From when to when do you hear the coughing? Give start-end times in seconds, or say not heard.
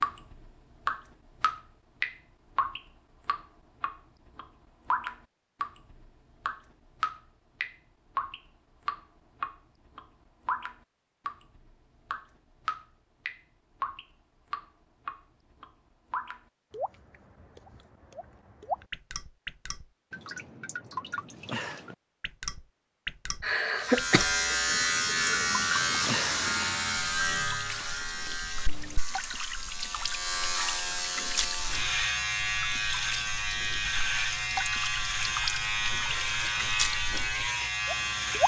23.4-24.3.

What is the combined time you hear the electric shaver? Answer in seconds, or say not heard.
15 s.